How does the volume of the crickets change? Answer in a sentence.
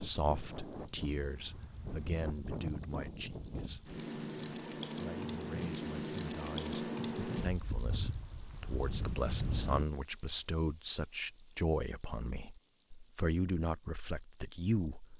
The loudness of the crickets goes up, then down.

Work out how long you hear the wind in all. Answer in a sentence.
The wind can be heard for 10 seconds in total.